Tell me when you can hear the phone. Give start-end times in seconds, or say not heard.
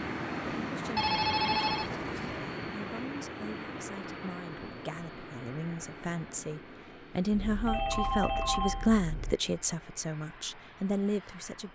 0.9-2.5, 7.3-9.3.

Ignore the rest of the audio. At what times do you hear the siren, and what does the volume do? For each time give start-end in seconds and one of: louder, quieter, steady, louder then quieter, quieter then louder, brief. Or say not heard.
not heard.